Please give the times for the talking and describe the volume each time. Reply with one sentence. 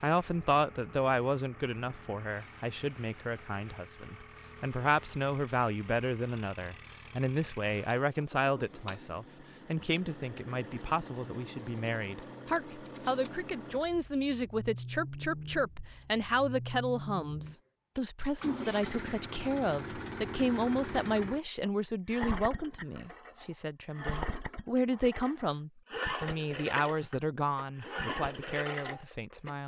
You can hear the talking from 0.0 to 29.6 s, at a steady volume.